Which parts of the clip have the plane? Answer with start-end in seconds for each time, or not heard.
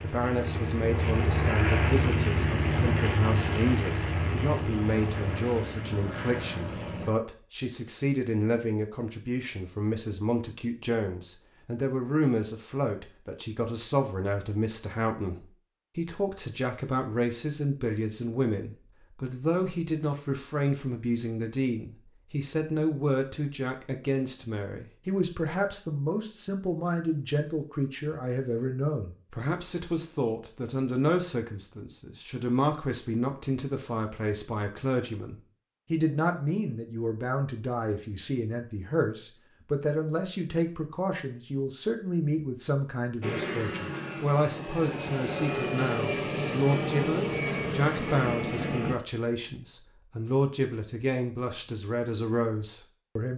0.0-7.2, 43.2-49.0.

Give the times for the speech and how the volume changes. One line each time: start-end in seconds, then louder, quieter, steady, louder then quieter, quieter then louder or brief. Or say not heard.
0.0-53.3 steady.